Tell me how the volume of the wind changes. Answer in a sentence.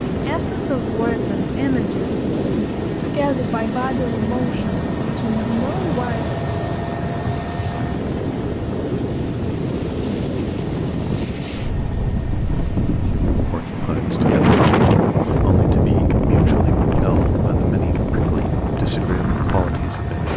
The loudness of the wind goes up.